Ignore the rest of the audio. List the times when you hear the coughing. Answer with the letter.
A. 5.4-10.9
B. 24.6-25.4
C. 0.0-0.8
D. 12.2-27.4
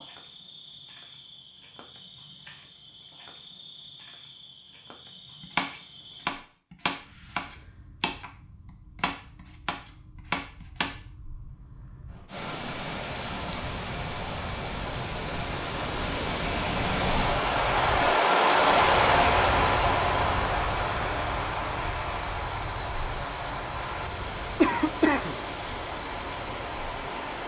B.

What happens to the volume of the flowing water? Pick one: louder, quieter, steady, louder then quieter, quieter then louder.
louder then quieter.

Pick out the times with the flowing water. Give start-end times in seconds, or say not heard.
12.2-27.4.